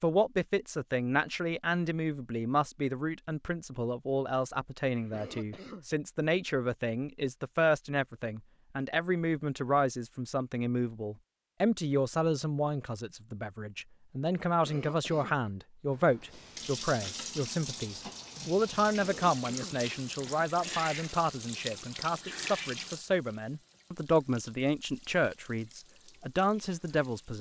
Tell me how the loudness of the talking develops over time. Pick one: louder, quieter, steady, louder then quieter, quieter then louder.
steady.